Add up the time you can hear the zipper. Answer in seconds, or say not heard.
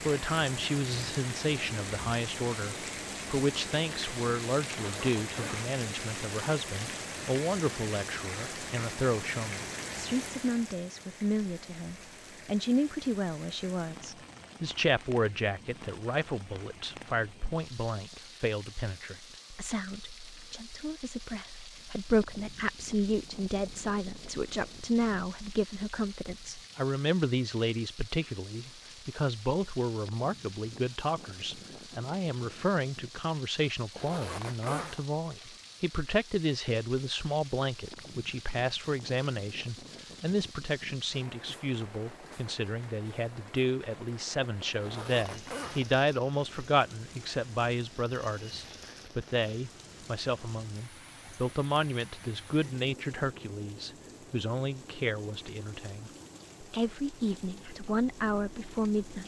3 s.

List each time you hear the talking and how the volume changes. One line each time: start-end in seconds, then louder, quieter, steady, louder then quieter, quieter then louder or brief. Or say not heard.
0.0-59.2 steady.